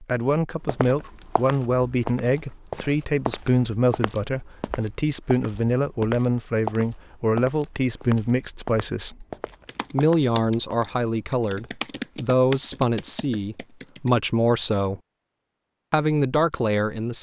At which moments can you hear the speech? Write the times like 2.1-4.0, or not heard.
0.0-9.2, 9.9-15.0, 15.9-17.1.